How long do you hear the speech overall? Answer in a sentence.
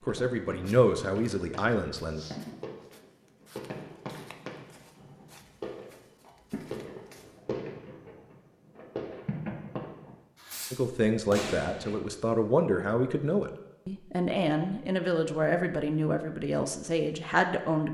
The speech can be heard for 9 seconds in total.